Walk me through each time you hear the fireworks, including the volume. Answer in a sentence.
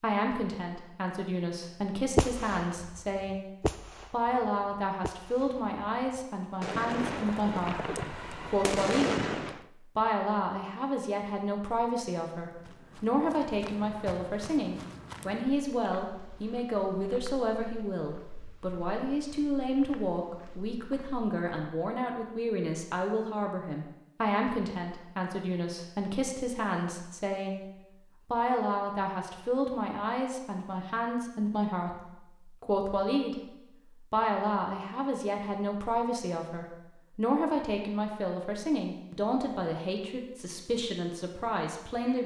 The fireworks can be heard from 2.1 to 9.7 s, getting quieter then louder.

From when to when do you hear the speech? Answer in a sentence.
The speech can be heard from 0.0 to 9.2 s, from 9.9 to 27.6 s, from 28.2 to 33.4 s and from 34.1 to 42.2 s.